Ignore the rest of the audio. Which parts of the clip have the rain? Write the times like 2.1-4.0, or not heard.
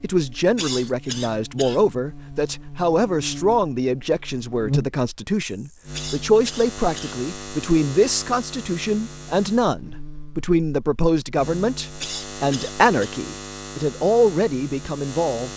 not heard.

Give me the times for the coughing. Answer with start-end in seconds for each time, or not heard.
0.6-1.9, 5.9-7.2, 12.0-13.2.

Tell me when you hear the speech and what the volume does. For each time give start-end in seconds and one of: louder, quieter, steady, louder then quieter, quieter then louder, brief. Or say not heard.
0.0-15.5 steady.